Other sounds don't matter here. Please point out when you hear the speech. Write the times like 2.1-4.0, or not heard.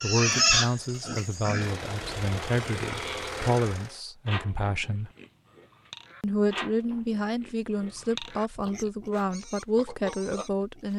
0.0-5.1, 6.2-10.9.